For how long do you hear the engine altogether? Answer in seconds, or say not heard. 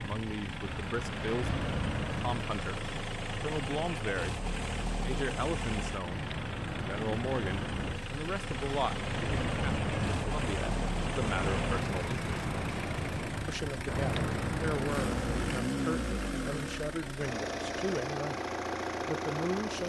20 s.